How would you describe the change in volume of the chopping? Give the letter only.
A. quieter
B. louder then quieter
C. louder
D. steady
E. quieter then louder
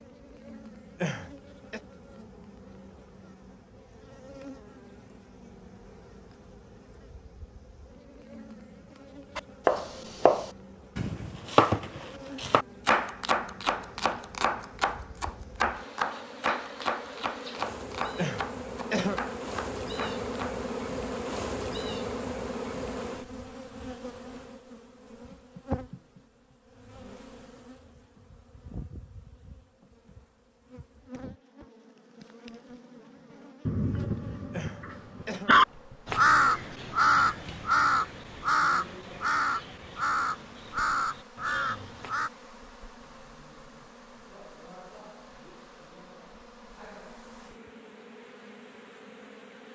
A.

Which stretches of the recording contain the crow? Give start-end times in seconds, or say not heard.
36.0-42.3.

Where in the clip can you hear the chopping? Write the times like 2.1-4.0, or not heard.
9.3-20.6.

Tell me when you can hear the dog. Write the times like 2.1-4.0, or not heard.
33.6-35.6.